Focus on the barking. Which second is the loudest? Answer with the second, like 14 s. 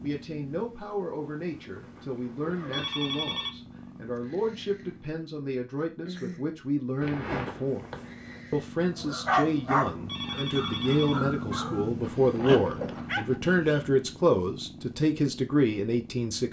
9 s.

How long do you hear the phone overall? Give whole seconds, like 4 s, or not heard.
2 s.